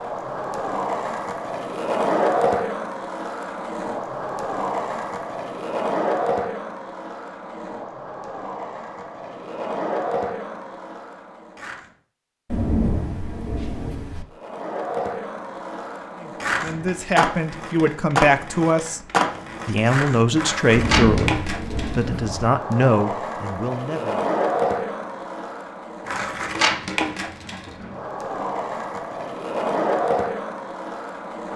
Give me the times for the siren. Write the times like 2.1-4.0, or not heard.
not heard.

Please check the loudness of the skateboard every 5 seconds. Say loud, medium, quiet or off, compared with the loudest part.
loud, loud, medium, loud, loud, loud, loud.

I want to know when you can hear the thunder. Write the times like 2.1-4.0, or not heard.
12.5-14.2, 20.7-22.5.